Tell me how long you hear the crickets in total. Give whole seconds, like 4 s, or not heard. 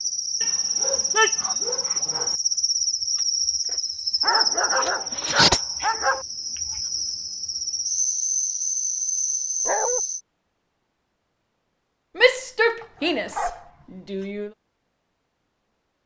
10 s.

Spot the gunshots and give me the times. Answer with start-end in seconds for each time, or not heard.
not heard.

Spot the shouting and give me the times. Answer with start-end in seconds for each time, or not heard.
12.2-14.5.